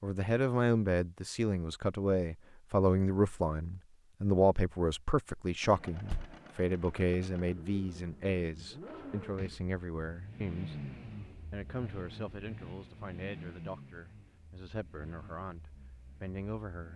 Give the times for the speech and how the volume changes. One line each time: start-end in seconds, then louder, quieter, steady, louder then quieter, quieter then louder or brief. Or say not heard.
0.0-16.9 quieter.